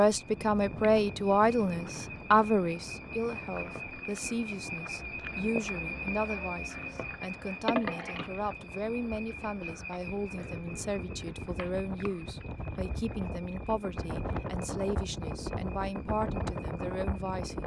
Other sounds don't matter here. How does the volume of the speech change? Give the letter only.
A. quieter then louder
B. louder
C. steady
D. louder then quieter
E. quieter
E.